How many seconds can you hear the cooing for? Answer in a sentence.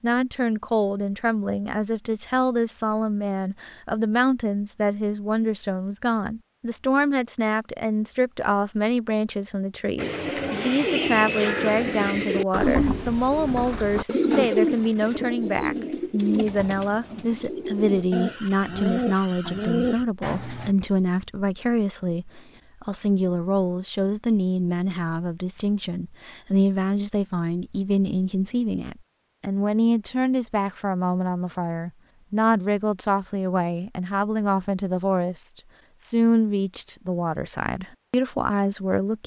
You can hear the cooing for 11 seconds altogether.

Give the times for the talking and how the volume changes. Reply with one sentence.
The talking can be heard from 0.0 to 39.2 s, at a steady volume.